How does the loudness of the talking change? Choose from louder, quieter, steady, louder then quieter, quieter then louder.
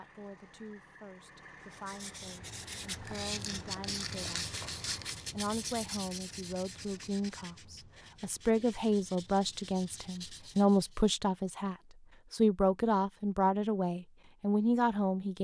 louder.